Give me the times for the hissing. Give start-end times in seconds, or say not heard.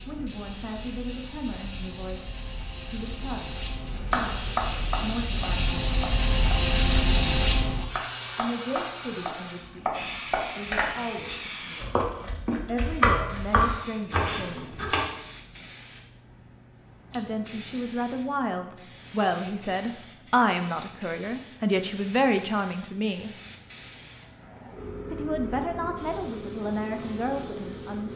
0.0-28.1.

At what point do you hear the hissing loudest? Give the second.
7 s.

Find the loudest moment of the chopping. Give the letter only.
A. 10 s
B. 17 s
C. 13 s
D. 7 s
C.